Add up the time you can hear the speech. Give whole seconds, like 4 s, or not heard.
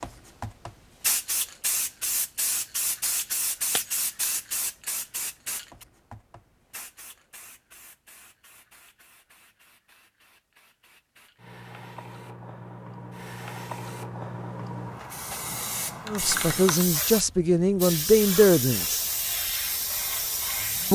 3 s.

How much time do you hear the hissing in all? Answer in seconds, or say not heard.
21 s.